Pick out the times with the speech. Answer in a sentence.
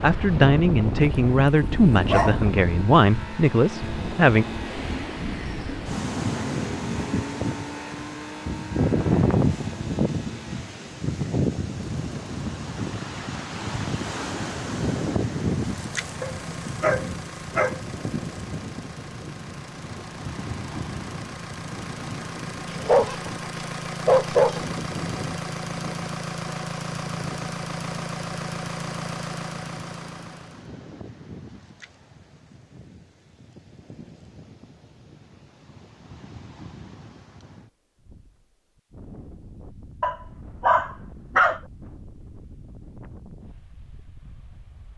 You can hear the speech from 0.0 to 4.5 s.